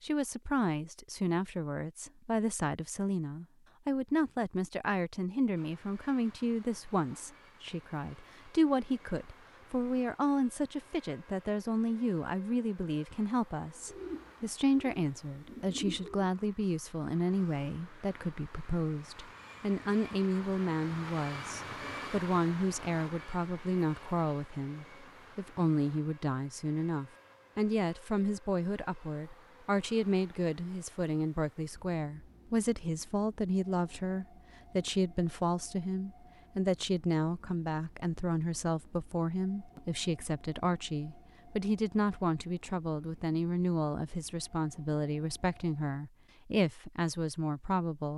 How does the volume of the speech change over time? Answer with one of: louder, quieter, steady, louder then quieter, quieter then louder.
steady.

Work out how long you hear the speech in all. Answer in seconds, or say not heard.
48 s.